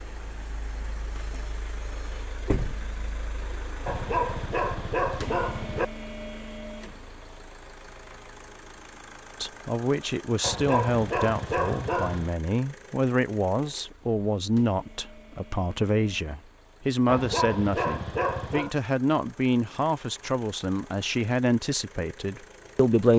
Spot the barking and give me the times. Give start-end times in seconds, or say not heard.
3.9-5.8, 10.4-12.3, 17.1-18.8.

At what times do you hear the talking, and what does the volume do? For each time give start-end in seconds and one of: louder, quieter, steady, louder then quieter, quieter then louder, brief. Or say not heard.
9.4-23.1 steady.